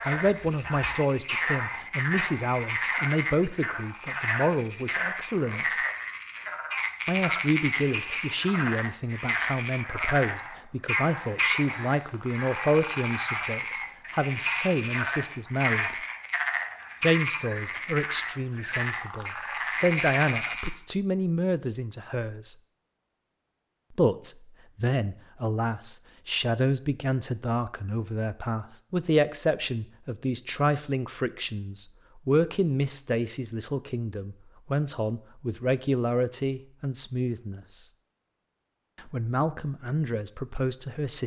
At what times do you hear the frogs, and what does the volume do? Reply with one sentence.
The frogs can be heard from 0.0 to 20.8 s, at a steady volume.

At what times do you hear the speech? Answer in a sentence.
You can hear the speech from 0.0 to 5.8 s, from 7.0 to 15.9 s, from 17.0 to 22.6 s, from 23.9 to 37.9 s and from 39.0 to 41.2 s.